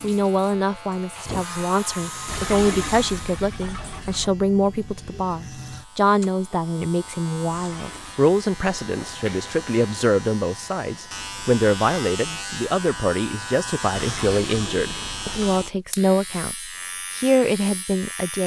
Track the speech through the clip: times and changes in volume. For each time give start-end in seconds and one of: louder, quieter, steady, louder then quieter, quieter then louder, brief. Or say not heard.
0.0-18.4 steady.